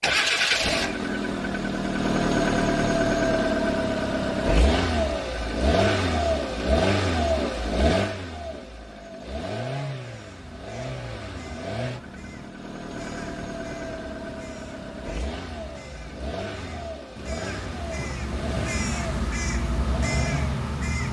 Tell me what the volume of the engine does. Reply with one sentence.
The volume of the engine goes down.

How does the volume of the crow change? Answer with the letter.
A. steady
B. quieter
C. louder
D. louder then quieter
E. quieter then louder
C.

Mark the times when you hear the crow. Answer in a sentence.
You can hear the crow from 10.0 to 21.0 s.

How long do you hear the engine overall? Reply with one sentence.
You can hear the engine for 21 seconds altogether.